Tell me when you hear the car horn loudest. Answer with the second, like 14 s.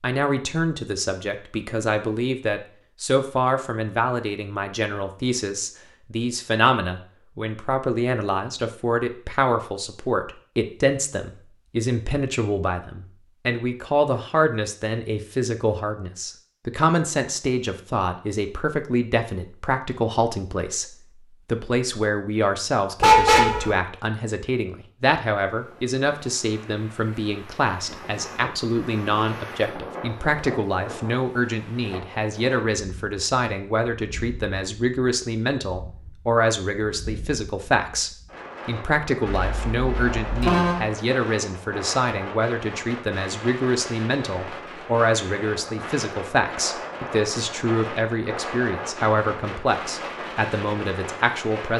23 s.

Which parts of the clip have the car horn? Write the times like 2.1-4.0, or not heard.
23.0-23.7, 39.3-40.8.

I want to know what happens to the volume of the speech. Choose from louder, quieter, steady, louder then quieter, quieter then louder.
steady.